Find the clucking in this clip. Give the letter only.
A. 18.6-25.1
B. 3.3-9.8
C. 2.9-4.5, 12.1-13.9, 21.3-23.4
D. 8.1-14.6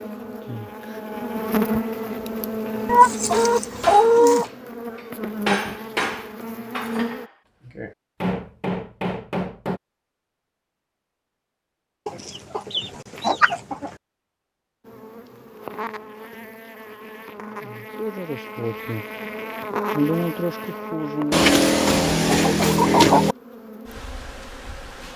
C.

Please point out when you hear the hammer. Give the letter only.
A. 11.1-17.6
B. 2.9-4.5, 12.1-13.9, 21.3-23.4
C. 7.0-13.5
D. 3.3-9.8
D.